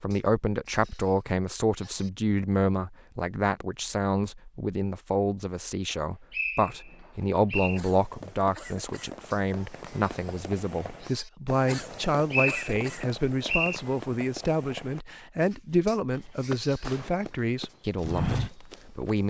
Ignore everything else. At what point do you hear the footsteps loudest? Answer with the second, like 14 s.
18 s.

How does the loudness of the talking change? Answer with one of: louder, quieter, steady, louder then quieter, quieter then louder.
steady.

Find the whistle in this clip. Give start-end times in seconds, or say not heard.
5.9-7.8, 12.3-13.8.